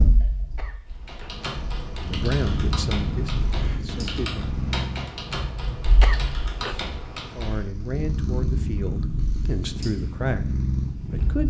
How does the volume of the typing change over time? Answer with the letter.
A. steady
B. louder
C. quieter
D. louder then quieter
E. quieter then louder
A.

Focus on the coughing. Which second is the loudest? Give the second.
6 s.